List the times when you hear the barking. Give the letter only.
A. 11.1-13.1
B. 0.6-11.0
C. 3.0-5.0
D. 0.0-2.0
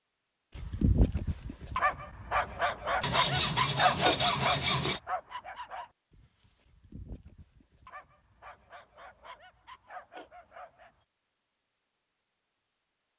B.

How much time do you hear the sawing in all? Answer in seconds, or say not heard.
2 s.